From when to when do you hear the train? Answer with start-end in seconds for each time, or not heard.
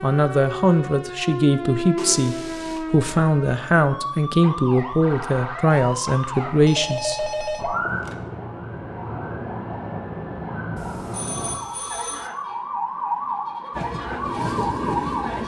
13.7-15.4.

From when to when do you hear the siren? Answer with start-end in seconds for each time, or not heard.
0.0-15.4.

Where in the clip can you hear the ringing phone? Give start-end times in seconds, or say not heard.
1.9-2.8, 5.7-8.2, 10.8-12.3.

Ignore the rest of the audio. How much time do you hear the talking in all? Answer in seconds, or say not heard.
8 s.